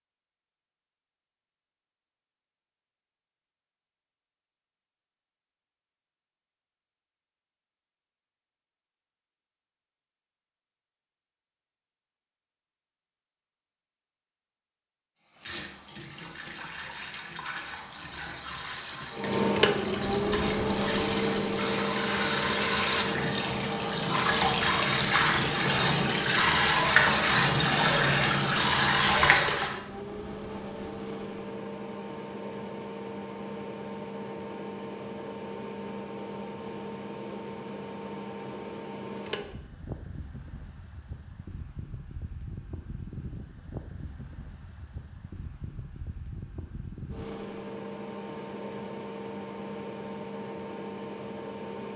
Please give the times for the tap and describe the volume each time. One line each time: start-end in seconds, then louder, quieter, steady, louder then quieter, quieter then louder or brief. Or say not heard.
15.3-29.8 louder.